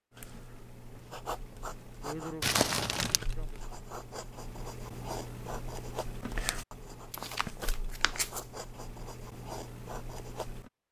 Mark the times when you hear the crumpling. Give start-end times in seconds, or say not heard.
2.4-3.6, 7.1-8.4.